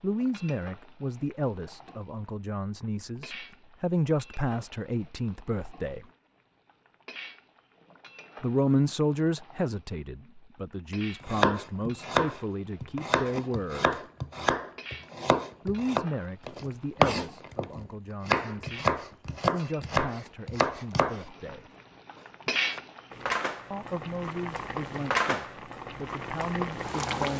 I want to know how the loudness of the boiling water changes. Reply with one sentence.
The volume of the boiling water goes up.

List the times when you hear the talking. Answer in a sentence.
The talking can be heard from 0.0 to 6.0 s, from 8.4 to 13.9 s, from 15.7 to 21.6 s and from 23.7 to 27.3 s.